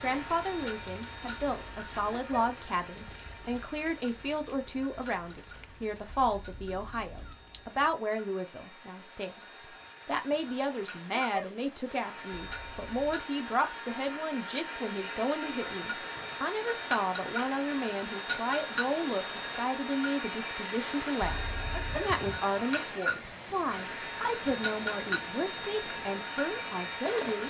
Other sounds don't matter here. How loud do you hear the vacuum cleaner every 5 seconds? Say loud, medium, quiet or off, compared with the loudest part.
medium, quiet, medium, loud, loud, loud.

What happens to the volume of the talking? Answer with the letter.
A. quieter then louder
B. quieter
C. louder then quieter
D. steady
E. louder
D.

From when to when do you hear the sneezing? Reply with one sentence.
You can hear the sneezing from 2.1 to 2.5 s, from 11.1 to 11.6 s and from 21.7 to 22.1 s.